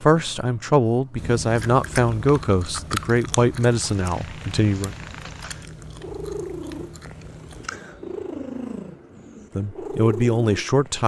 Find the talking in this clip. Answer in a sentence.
You can hear the talking from 0.0 to 5.0 s and from 9.6 to 11.0 s.